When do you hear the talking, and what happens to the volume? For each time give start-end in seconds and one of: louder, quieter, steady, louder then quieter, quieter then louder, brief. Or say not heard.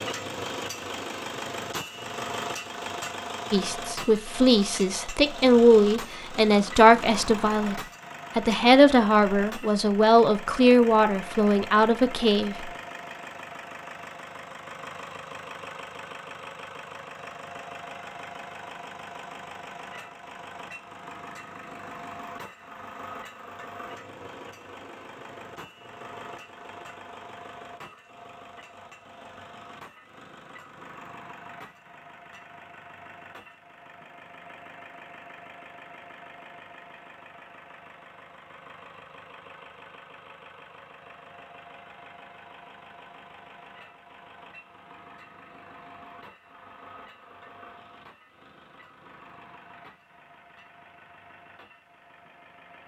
3.5-12.7 steady.